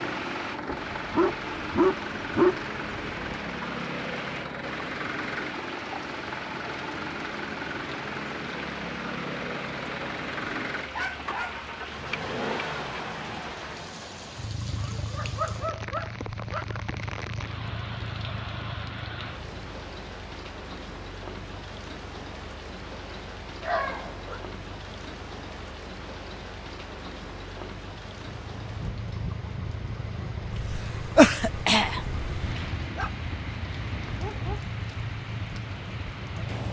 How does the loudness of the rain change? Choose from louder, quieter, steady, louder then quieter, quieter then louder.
steady.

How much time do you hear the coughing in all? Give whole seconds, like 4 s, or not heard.
2 s.